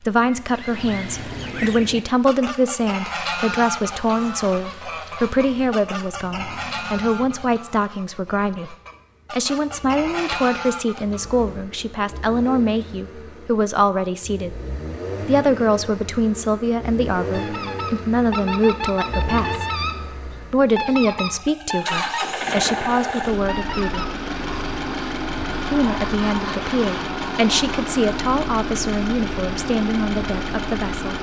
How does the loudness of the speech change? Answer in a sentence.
The volume of the speech stays about the same.